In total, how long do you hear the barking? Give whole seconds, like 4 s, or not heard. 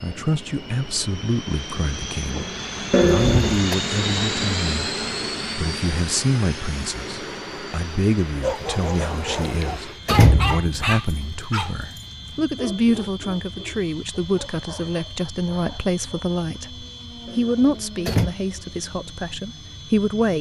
8 s.